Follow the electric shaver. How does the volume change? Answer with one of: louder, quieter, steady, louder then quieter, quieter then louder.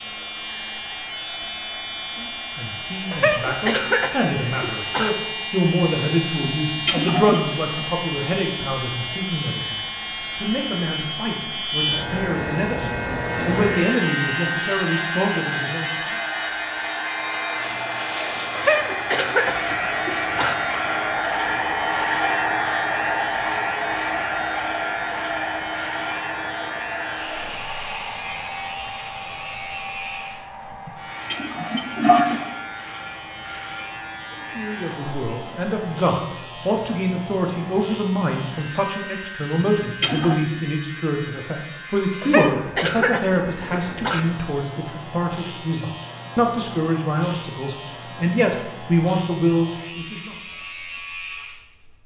quieter.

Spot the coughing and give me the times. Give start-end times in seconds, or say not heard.
3.1-5.1, 18.6-20.6, 42.2-44.2.